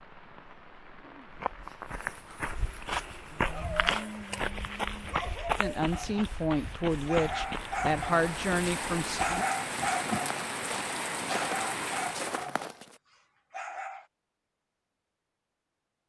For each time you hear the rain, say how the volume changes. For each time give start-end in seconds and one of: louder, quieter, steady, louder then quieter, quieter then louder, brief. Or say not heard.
0.0-12.4 louder.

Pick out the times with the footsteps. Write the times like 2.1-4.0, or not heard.
1.3-12.9.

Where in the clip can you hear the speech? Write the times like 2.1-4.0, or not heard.
5.5-9.2.